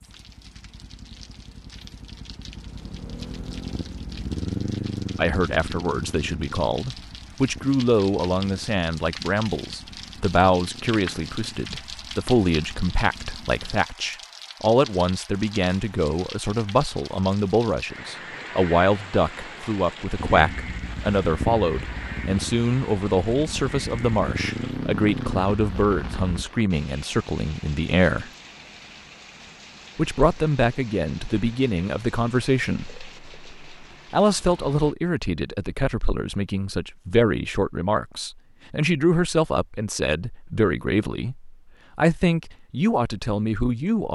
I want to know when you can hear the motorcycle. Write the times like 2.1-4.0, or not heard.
0.0-13.8, 20.1-26.4.